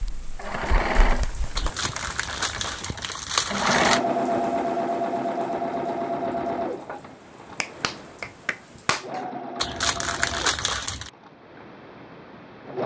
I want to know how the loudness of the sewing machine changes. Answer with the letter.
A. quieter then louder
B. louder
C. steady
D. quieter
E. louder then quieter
E.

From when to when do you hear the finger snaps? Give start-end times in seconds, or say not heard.
0.0-1.7, 7.6-9.2.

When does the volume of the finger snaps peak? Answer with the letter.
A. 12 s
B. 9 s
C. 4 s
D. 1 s
B.